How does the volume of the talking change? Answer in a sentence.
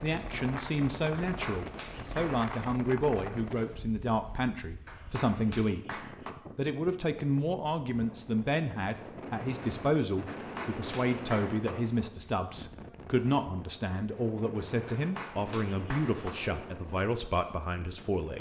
The volume of the talking stays about the same.